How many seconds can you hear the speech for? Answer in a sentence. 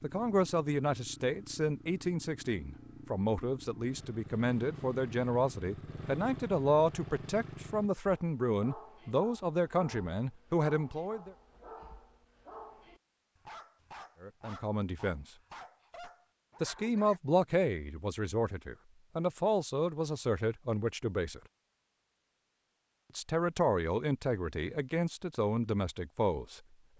The speech can be heard for 21 seconds in total.